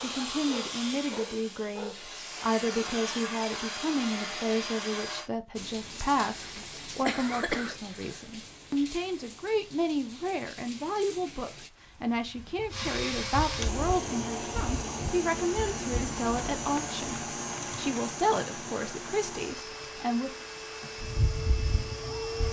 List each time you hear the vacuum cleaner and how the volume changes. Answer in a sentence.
The vacuum cleaner can be heard from 0.0 to 5.3 s, getting quieter then louder; and from 12.7 to 22.4 s, getting quieter.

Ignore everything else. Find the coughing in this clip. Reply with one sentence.
You can hear the coughing from 6.4 to 8.2 s.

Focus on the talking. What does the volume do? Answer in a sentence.
The volume of the talking stays about the same.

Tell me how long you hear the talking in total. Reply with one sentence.
The talking can be heard for 20 seconds in total.